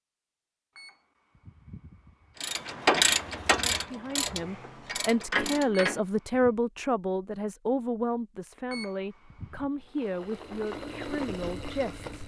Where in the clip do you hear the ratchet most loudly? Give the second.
3 s.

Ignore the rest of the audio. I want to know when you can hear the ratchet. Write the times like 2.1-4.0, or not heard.
2.4-6.0.